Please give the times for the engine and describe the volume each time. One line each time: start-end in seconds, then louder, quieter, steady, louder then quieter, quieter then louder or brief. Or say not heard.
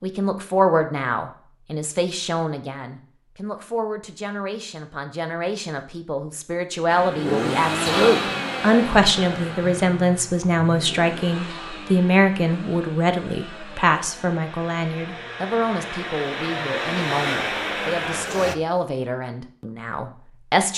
6.8-18.6 quieter then louder.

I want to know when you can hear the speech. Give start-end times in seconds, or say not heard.
0.0-20.7.